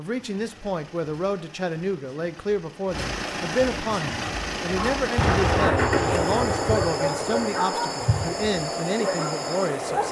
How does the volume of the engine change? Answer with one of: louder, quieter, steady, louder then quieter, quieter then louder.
louder.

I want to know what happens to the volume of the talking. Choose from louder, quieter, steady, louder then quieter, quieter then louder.
steady.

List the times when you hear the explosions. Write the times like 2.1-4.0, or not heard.
5.2-7.5.